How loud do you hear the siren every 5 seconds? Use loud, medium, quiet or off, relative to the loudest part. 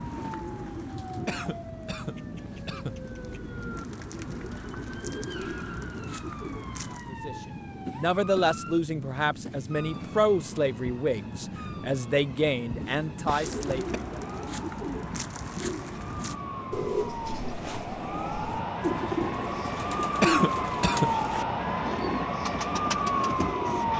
quiet, quiet, quiet, medium, loud.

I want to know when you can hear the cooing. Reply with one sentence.
The cooing can be heard from 0.0 to 7.1 s and from 13.3 to 23.9 s.